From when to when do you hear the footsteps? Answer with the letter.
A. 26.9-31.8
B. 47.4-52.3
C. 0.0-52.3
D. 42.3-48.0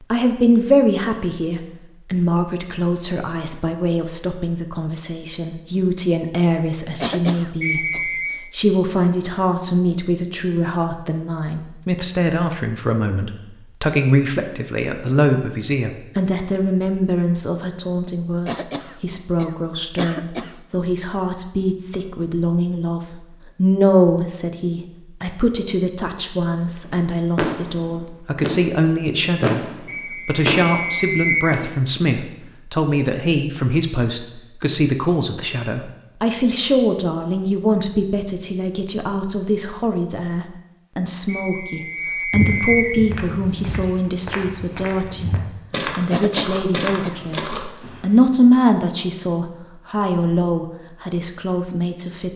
D.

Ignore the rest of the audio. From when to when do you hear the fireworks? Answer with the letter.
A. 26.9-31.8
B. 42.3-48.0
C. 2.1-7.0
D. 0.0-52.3
A.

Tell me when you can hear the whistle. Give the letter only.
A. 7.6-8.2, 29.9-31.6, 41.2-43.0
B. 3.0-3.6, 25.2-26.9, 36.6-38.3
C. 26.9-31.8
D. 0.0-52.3
A.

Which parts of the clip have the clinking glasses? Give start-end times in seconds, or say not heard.
not heard.